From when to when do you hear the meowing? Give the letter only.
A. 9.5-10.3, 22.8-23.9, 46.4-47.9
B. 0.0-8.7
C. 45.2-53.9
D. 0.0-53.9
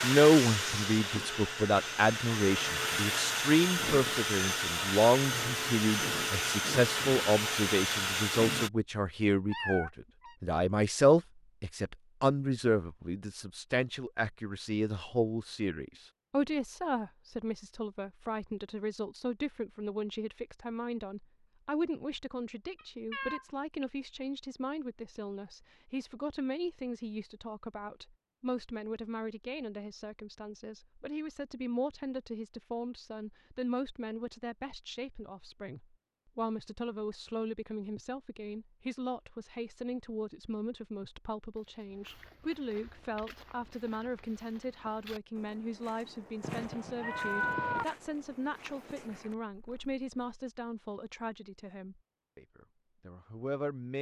A.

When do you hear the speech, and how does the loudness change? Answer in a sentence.
You can hear the speech from 0.0 to 53.9 s, getting quieter.